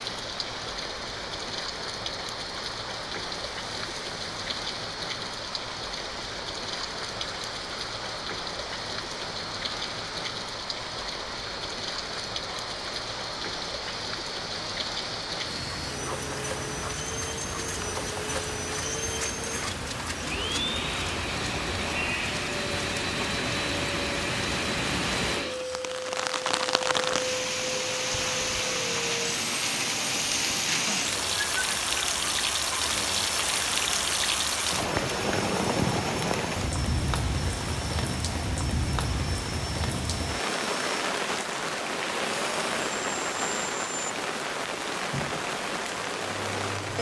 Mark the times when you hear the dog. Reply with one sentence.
You can't hear the dog here.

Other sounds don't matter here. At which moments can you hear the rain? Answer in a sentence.
The rain can be heard from 0.0 to 46.9 s.